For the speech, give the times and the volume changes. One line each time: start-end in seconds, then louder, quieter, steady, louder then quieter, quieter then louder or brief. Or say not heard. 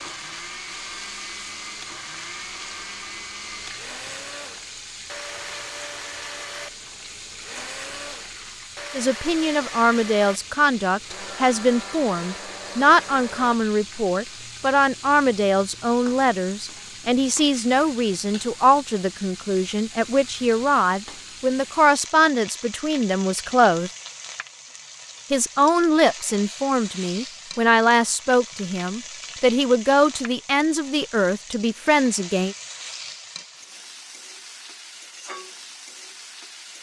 8.9-23.9 steady
25.3-32.5 steady.